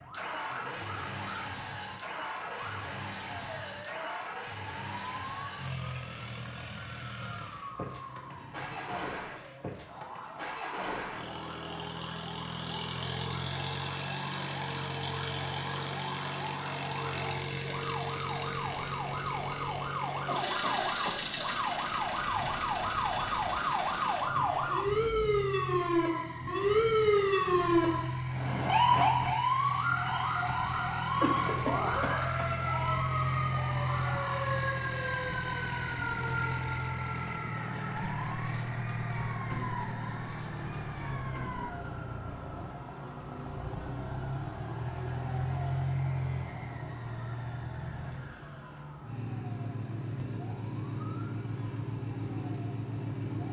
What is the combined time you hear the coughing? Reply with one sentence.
You can hear the coughing for 2 seconds altogether.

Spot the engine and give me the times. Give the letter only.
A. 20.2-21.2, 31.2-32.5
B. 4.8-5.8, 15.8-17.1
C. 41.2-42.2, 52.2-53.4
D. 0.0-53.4
D.